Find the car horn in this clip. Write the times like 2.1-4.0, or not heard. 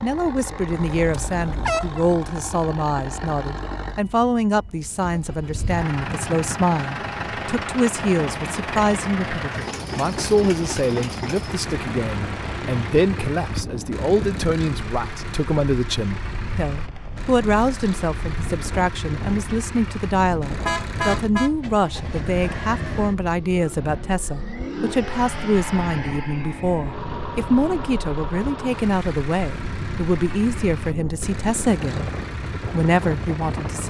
0.7-2.0, 20.6-21.5.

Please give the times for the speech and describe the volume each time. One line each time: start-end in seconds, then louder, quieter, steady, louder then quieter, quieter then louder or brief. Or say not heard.
0.0-33.8 steady.